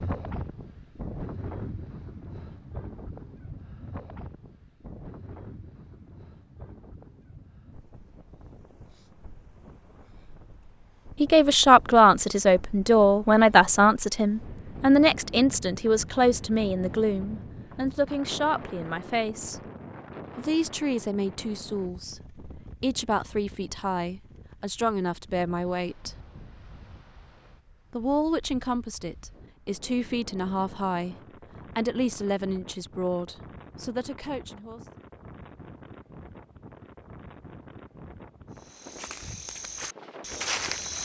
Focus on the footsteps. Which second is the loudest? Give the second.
41 s.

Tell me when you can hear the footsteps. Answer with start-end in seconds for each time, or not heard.
38.5-41.0.